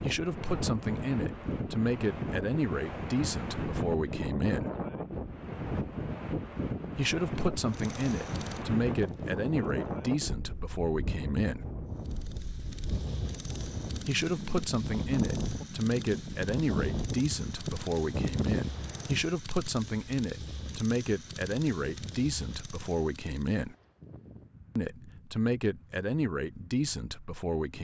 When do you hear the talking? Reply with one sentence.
The talking can be heard from 0.0 to 4.7 s, from 7.0 to 11.7 s, from 14.1 to 23.8 s and from 24.8 to 27.7 s.